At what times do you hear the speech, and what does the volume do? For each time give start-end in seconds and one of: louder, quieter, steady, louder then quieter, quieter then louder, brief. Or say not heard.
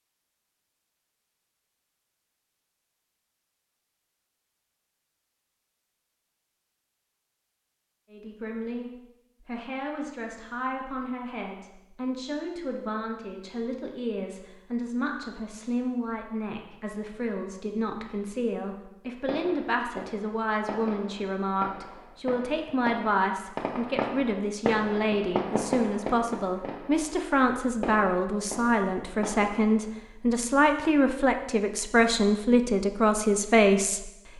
8.1-34.3 louder.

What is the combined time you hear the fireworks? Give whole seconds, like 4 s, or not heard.
11 s.